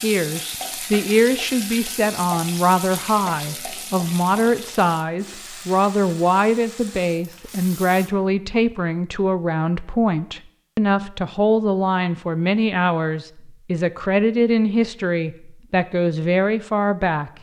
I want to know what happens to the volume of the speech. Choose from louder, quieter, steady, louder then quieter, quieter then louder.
steady.